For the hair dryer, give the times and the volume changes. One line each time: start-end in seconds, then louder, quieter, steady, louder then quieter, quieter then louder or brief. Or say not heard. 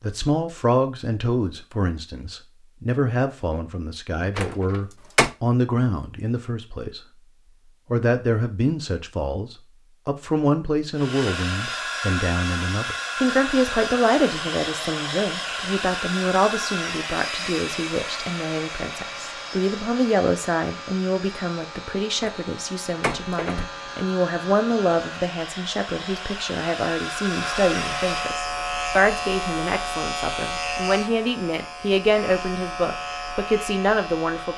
10.9-28.4 quieter then louder.